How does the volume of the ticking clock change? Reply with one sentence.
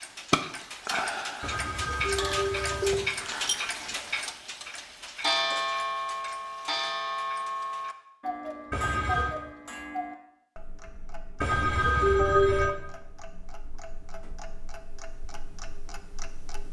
The volume of the ticking clock goes down.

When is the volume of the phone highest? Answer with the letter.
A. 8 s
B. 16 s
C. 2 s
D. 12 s
D.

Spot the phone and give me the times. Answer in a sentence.
The phone can be heard from 1.4 to 3.1 s, from 8.7 to 9.3 s and from 11.4 to 12.8 s.